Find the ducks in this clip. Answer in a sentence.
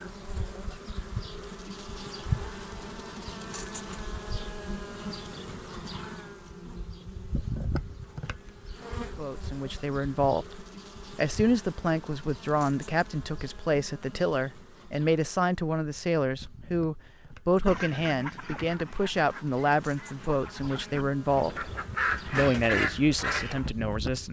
The ducks can be heard from 17.6 to 23.7 s.